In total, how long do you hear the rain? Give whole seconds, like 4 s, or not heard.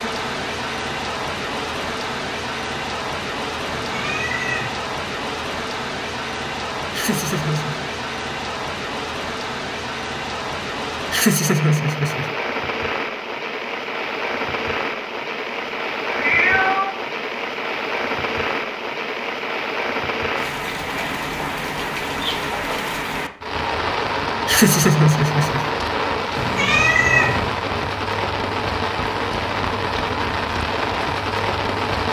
32 s.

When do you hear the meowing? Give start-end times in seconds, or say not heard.
3.7-4.8, 16.1-16.9, 26.4-27.6.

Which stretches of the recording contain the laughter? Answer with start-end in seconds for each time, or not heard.
6.9-7.9, 11.1-12.3, 24.4-25.7.